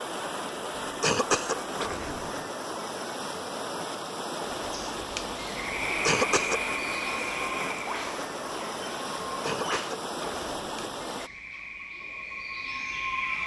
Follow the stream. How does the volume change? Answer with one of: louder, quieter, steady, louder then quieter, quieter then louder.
steady.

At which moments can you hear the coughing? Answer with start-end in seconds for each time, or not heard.
0.8-2.5, 5.8-6.6, 9.4-10.8.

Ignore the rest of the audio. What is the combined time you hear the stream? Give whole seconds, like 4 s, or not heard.
11 s.